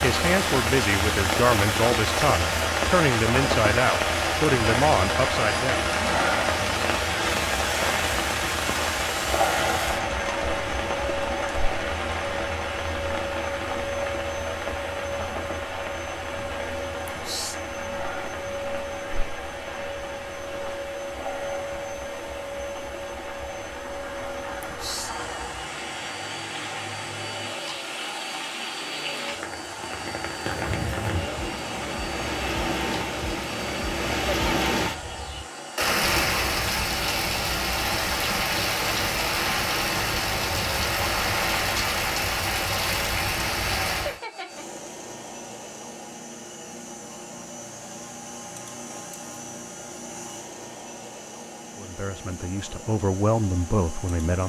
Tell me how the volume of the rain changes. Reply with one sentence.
The volume of the rain goes down, then up.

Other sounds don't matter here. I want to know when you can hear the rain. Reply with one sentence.
The rain can be heard from 0.0 to 44.2 s.